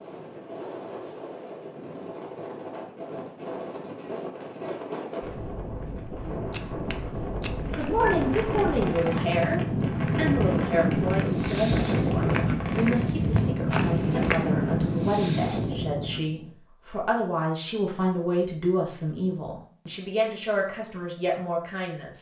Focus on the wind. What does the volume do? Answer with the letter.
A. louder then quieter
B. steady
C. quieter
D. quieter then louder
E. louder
E.